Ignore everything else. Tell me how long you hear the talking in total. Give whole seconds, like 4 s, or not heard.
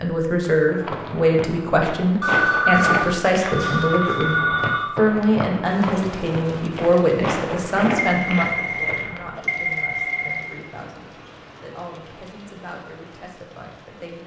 14 s.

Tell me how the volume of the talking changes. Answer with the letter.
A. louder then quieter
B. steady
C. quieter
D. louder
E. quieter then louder
C.